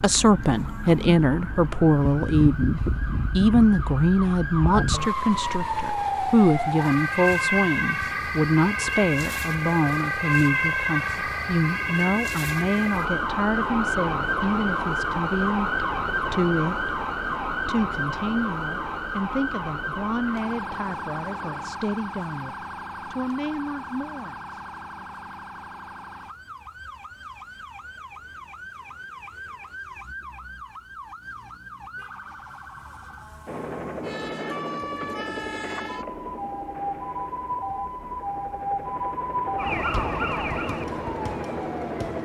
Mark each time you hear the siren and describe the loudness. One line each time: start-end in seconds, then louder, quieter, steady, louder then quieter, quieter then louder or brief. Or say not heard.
0.0-42.2 quieter then louder.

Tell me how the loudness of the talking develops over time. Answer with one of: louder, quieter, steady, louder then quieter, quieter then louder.
quieter.